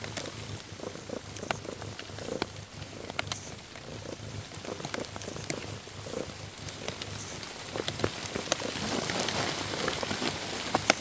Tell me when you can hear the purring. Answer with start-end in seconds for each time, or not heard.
0.0-10.9.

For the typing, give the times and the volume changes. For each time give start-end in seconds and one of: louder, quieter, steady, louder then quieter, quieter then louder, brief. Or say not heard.
not heard.